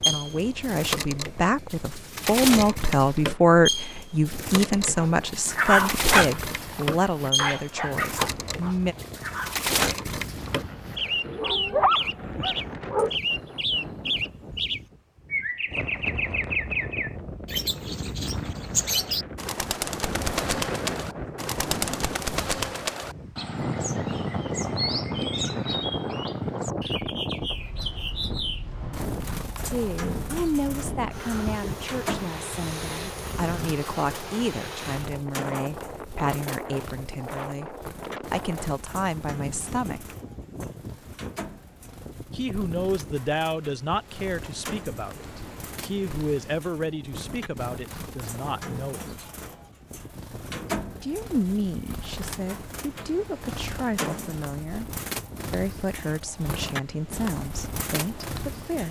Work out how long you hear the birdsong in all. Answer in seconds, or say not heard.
59 s.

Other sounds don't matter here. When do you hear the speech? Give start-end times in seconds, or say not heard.
0.1-8.9, 29.6-40.1, 42.3-49.1, 51.0-58.8.